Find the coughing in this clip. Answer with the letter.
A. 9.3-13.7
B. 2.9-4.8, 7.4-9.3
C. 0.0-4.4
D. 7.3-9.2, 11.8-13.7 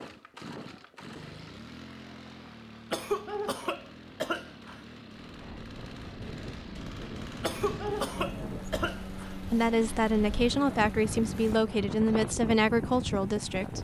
B.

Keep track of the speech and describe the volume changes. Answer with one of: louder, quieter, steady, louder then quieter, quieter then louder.
steady.